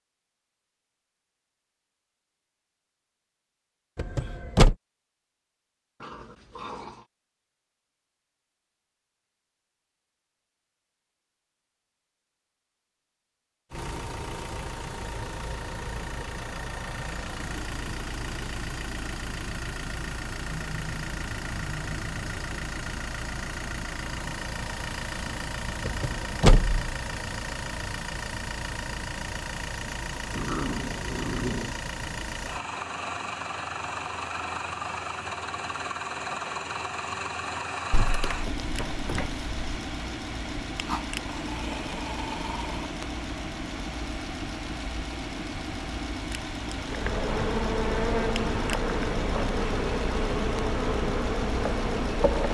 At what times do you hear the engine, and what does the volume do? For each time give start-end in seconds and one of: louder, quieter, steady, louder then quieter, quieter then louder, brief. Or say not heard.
13.7-52.5 steady.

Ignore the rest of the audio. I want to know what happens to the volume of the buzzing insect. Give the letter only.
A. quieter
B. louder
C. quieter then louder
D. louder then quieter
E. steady
E.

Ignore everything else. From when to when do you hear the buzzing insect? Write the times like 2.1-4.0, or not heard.
46.8-52.5.